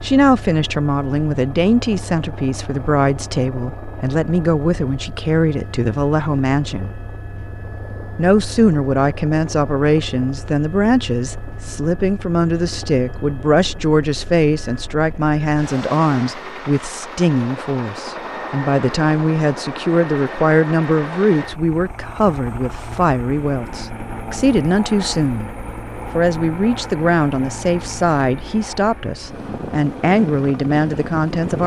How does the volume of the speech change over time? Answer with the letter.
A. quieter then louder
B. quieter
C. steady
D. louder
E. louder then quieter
C.